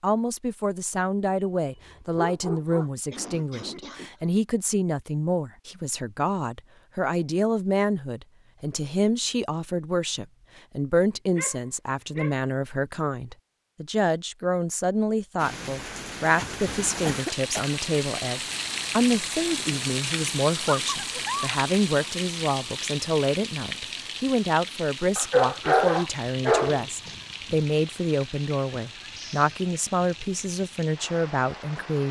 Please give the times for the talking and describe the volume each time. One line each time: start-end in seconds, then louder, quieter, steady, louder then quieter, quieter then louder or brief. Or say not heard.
0.0-32.0 steady.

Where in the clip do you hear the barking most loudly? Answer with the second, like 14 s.
26 s.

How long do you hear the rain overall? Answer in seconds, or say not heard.
17 s.